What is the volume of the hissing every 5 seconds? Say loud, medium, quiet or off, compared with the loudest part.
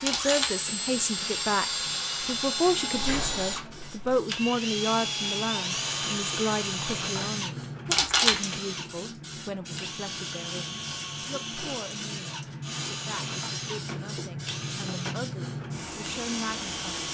medium, loud, medium, loud.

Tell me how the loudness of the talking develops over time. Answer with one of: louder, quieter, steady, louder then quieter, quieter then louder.
quieter.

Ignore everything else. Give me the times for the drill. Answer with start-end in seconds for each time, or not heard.
0.0-17.1.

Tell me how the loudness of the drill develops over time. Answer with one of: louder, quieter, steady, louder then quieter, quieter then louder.
quieter.